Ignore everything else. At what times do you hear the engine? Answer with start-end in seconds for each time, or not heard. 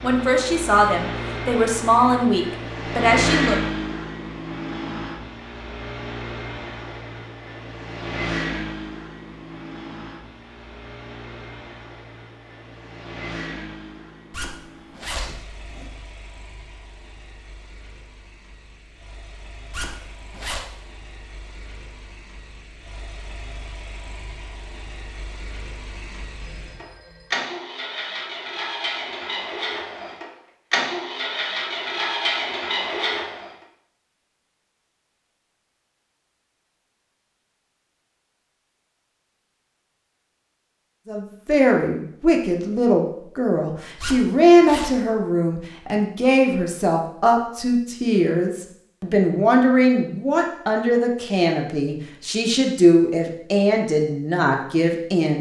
0.0-33.5.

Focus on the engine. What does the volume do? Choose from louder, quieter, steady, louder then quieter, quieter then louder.
quieter then louder.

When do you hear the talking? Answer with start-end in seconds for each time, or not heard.
0.0-3.6, 41.0-55.3.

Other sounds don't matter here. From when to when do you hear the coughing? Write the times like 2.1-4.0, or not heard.
not heard.